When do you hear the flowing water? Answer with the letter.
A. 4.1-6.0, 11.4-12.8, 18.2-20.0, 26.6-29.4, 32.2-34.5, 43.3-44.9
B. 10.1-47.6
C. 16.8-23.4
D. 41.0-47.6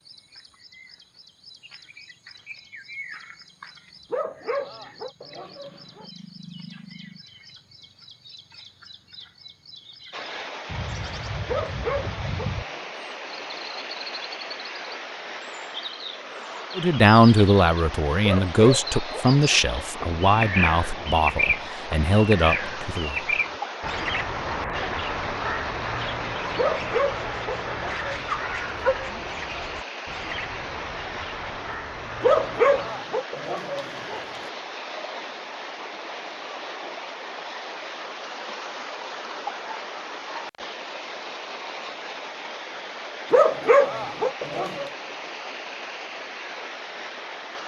B.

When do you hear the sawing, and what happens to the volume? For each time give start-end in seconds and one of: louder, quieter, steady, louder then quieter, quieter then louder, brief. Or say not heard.
not heard.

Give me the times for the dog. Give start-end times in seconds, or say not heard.
4.1-6.0, 11.4-12.8, 18.2-20.0, 26.6-29.4, 32.2-34.5, 43.3-44.9.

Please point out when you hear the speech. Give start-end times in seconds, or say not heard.
16.8-23.4.